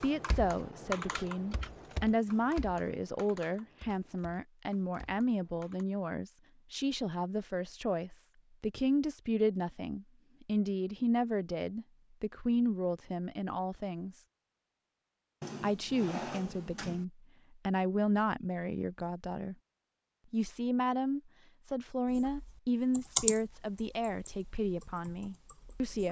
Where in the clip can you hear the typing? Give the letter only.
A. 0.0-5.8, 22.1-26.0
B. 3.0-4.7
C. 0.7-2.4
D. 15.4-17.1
A.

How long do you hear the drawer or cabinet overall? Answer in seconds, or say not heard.
2 s.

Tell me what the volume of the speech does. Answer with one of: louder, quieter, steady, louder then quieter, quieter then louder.
steady.